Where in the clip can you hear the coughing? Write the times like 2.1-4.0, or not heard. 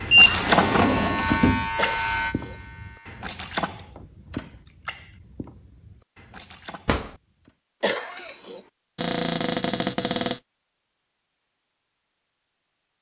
1.8-2.5, 7.8-8.6.